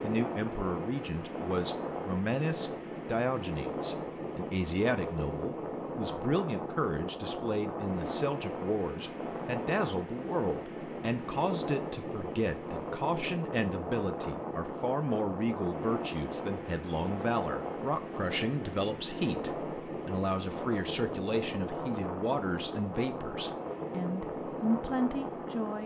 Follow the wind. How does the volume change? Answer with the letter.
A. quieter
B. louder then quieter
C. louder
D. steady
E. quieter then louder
D.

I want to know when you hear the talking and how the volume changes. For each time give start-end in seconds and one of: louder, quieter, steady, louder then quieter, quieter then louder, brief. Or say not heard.
0.0-25.8 steady.